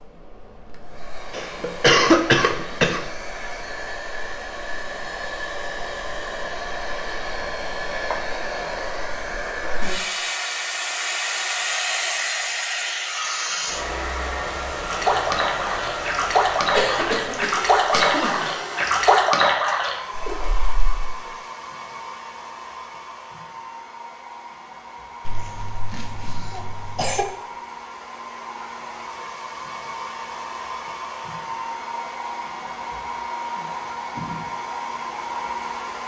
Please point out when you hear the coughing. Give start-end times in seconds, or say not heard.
1.3-3.1, 16.7-18.5, 25.2-27.2.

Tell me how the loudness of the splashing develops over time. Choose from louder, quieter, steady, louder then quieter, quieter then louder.
louder then quieter.